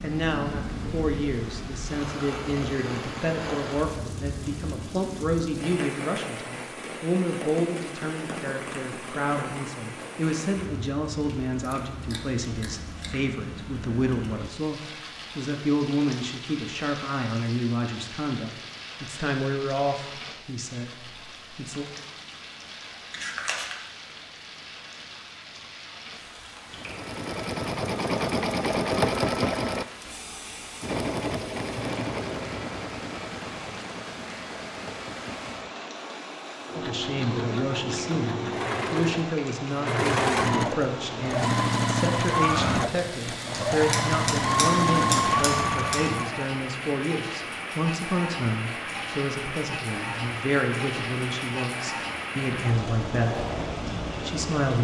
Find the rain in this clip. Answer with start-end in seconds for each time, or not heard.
0.0-54.7.